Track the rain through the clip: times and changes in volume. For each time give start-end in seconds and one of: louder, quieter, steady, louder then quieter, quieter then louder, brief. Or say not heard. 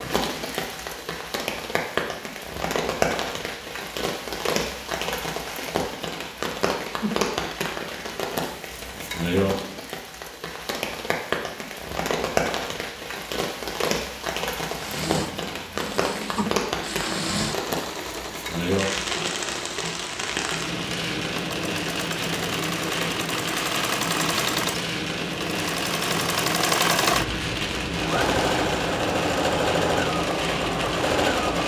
0.0-31.6 steady.